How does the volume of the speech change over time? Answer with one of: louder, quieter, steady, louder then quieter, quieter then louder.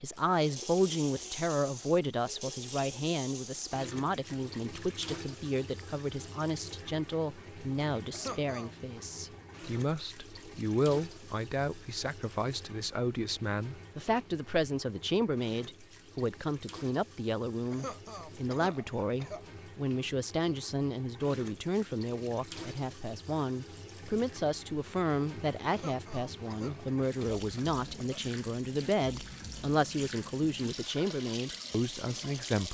steady.